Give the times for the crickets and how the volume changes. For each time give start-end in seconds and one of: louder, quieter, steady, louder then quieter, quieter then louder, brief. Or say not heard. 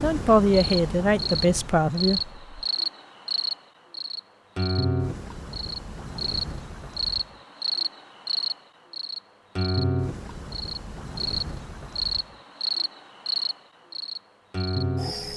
0.0-15.3 steady.